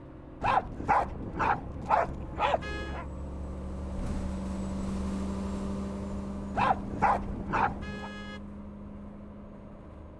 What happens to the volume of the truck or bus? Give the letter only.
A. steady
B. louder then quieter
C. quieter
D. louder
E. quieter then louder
B.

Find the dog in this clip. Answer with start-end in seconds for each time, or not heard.
0.4-3.0, 6.5-8.1.